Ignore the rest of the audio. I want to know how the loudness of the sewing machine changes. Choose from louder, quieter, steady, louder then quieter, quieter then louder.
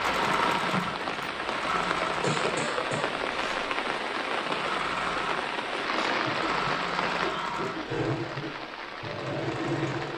quieter then louder.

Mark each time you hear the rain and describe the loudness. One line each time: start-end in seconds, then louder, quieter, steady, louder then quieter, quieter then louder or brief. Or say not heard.
0.0-10.1 quieter.